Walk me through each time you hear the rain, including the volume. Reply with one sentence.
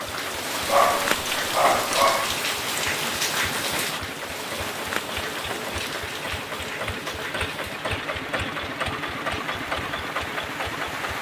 You can hear the rain from 0.0 to 11.1 s, getting quieter.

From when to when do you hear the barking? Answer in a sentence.
The barking can be heard from 0.7 to 2.4 s.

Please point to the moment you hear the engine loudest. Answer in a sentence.
The volume of the engine peaks at 9 seconds.